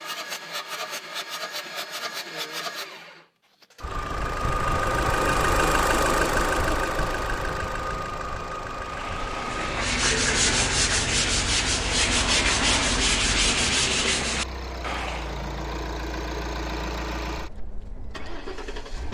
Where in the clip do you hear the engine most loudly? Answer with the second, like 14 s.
6 s.